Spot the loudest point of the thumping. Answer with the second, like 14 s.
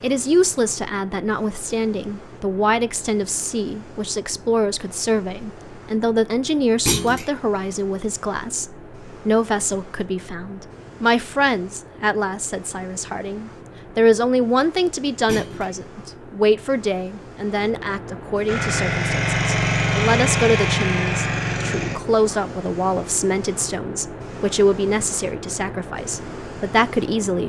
7 s.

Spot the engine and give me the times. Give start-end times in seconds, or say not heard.
18.4-22.0.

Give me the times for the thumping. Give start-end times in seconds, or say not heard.
6.8-7.3, 15.2-15.7.